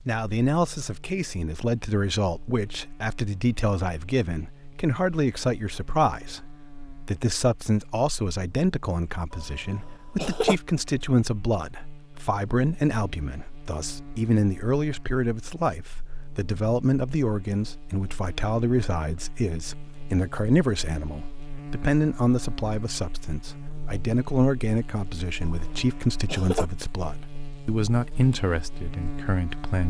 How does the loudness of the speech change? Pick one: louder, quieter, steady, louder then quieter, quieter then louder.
steady.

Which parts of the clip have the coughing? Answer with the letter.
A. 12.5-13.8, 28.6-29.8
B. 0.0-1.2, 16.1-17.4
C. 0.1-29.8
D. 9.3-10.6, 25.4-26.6
D.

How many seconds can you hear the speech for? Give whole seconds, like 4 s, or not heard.
30 s.